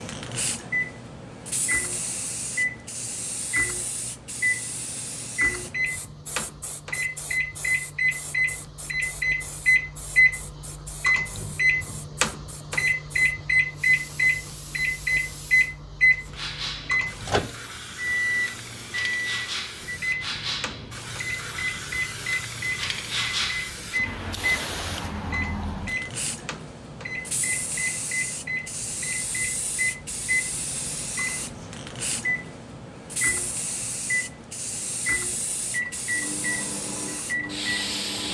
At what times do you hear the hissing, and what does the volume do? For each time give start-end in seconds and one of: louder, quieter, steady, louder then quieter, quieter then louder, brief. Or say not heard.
0.0-38.3 quieter then louder.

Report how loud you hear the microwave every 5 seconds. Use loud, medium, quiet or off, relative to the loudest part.
medium, loud, loud, loud, medium, medium, medium, medium.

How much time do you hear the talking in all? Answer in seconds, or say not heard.
not heard.